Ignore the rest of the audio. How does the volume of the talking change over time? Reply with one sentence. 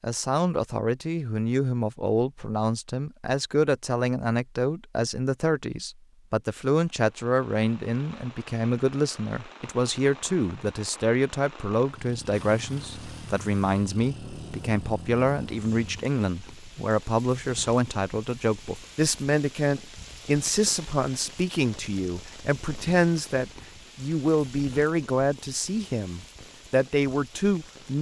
The loudness of the talking stays about the same.